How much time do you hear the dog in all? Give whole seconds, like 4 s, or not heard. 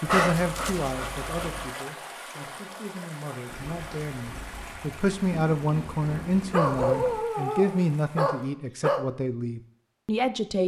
4 s.